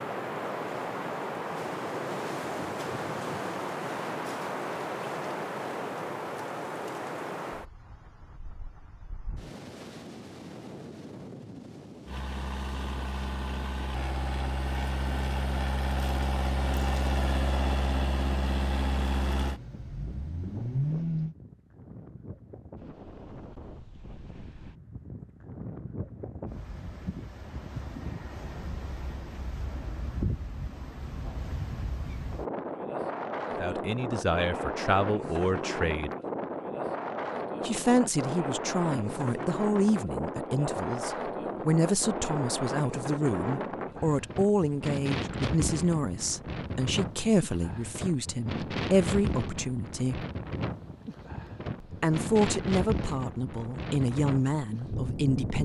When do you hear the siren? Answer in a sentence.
The siren can't be heard in this clip.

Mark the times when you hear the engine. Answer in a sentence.
You can hear the engine from 12.1 to 21.4 s.